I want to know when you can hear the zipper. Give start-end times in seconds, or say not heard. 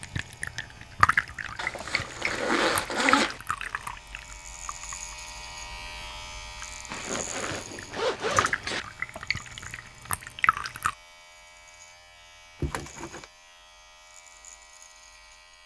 1.6-3.4, 6.9-8.8, 12.6-13.2.